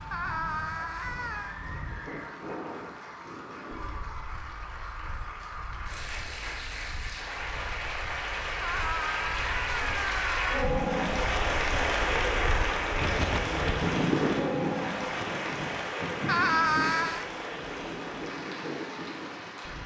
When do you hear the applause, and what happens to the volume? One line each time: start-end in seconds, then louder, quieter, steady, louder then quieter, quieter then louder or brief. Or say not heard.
0.0-19.8 louder then quieter.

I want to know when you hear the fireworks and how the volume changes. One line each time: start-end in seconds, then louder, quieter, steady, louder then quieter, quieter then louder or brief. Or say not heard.
not heard.